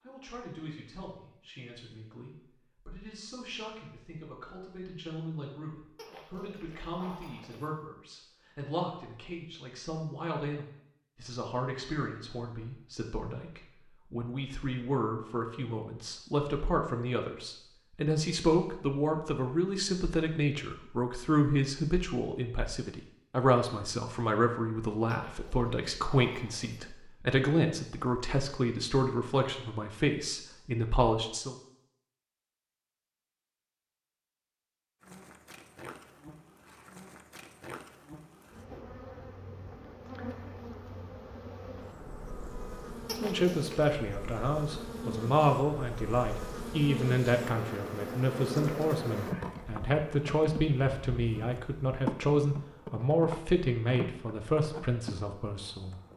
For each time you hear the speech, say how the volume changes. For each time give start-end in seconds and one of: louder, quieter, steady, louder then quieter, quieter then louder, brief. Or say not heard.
0.0-31.6 louder
43.2-56.1 steady.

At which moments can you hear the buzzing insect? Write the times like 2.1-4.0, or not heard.
35.0-56.1.